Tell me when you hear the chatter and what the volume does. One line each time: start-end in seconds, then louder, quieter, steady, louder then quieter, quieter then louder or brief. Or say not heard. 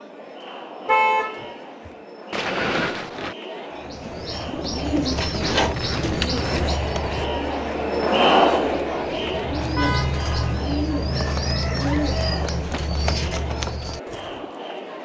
0.0-15.0 louder then quieter.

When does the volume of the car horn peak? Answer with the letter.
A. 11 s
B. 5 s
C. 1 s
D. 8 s
C.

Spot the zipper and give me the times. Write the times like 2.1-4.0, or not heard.
2.3-3.4, 5.5-7.2, 11.8-12.8.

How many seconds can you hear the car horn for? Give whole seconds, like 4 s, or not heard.
2 s.